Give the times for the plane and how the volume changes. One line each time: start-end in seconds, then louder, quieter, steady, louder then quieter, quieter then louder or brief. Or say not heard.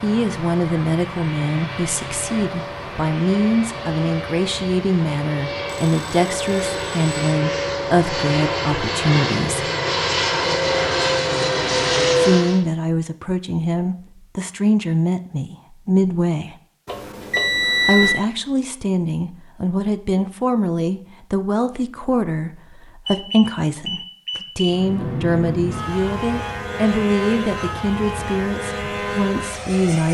0.0-12.6 louder
24.6-30.0 steady.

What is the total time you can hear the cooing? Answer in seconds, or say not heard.
not heard.